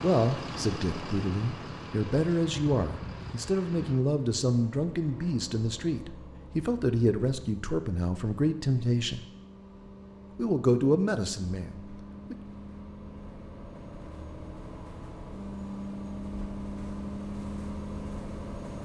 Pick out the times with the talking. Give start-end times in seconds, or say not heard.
0.0-9.2, 10.3-12.3.